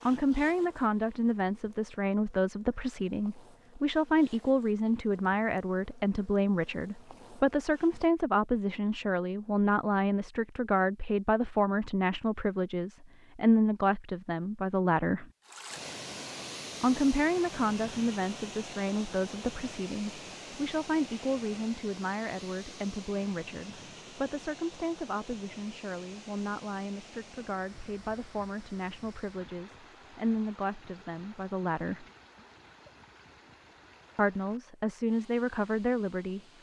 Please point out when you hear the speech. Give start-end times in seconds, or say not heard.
0.1-15.2, 16.8-32.0, 34.1-36.4.